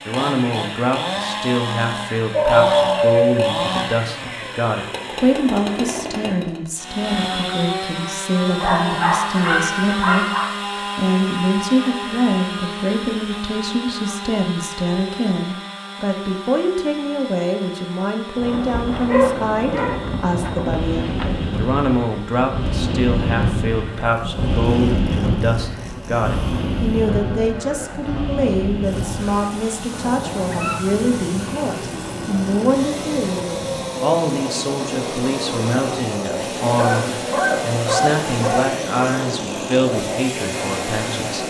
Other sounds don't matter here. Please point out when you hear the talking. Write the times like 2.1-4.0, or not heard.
0.1-10.2, 10.9-41.4.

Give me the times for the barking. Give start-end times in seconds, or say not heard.
2.3-3.9, 8.6-10.5, 18.9-21.3, 30.4-30.9, 36.8-38.8.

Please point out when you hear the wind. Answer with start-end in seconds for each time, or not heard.
18.4-41.4.